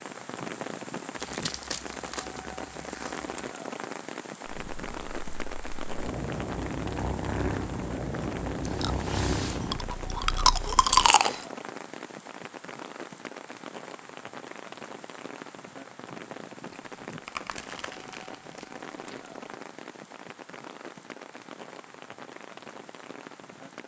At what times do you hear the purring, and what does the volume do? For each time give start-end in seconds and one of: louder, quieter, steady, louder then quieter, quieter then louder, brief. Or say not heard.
4.5-11.1 louder then quieter.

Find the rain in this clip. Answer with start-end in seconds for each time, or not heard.
0.0-23.8.